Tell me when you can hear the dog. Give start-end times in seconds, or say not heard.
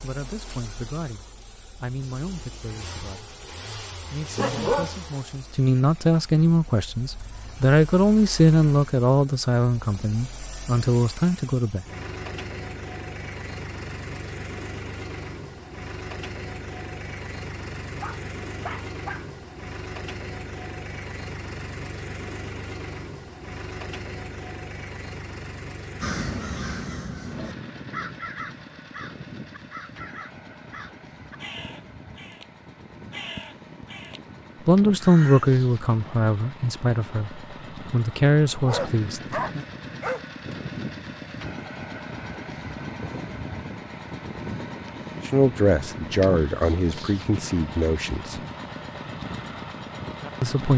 4.3-5.0, 18.0-19.2, 38.6-40.6.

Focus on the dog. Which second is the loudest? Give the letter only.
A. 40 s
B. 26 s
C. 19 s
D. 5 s
D.